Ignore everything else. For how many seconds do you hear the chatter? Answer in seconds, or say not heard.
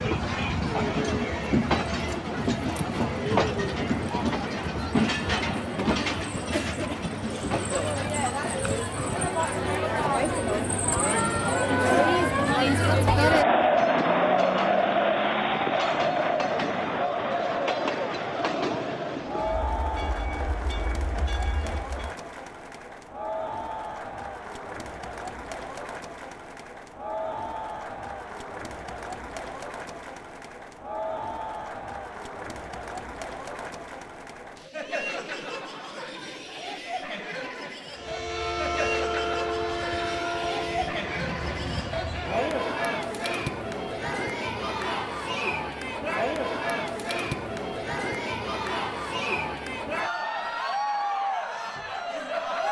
52 s.